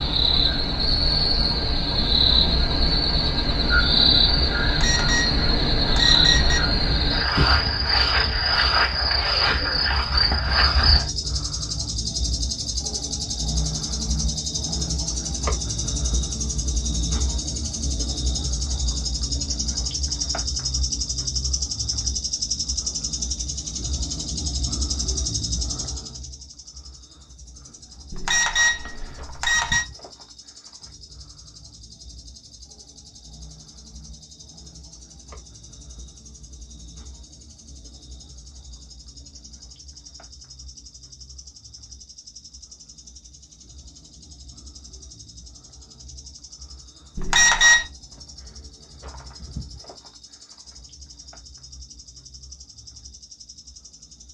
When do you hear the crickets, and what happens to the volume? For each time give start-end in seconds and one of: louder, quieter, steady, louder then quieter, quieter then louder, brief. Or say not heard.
0.0-54.2 quieter.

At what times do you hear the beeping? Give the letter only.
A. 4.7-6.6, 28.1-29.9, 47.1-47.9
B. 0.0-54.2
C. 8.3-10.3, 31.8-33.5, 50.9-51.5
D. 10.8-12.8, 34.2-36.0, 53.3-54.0
A.